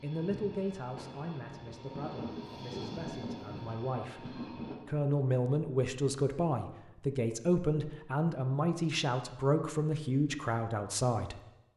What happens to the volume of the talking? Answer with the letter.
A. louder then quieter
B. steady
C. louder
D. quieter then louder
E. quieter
C.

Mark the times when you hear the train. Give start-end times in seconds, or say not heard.
0.0-4.8.